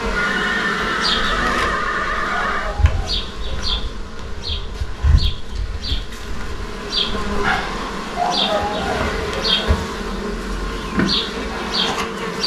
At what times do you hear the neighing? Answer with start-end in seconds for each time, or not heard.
0.1-2.8, 8.9-9.5.